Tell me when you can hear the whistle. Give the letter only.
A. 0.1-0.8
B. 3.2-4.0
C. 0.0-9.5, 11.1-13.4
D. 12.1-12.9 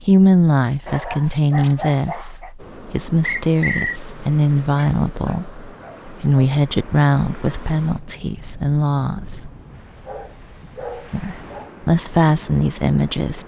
B.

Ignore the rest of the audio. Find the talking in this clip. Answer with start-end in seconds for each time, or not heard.
0.0-9.5, 11.1-13.4.